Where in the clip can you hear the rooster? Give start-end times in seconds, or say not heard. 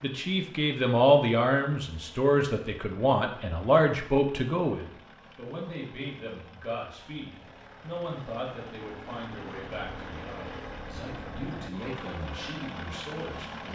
not heard.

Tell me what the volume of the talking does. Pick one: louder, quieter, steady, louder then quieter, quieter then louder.
quieter.